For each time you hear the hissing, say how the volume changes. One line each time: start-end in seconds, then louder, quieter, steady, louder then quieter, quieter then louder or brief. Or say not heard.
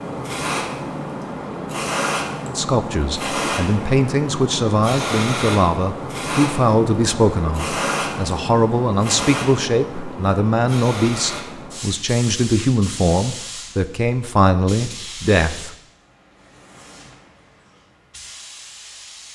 0.0-19.3 quieter.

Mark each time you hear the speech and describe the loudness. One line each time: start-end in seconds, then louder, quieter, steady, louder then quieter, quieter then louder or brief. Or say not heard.
2.5-15.8 steady.